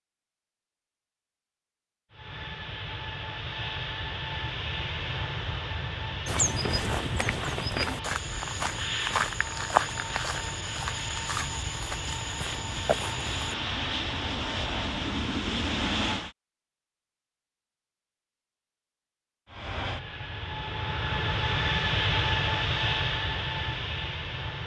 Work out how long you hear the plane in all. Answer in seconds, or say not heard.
19 s.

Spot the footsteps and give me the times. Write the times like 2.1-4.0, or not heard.
6.2-13.6.